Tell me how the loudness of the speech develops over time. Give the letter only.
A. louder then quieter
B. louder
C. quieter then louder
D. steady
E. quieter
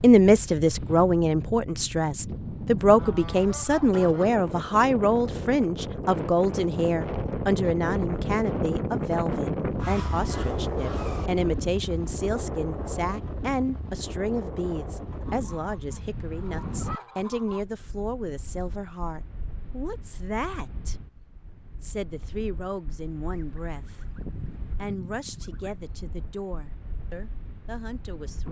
E.